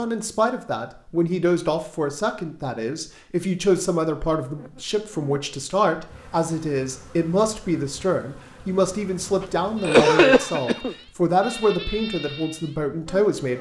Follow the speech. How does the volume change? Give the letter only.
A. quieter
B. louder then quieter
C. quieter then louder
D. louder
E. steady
E.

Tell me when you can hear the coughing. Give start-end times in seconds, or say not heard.
9.8-10.9.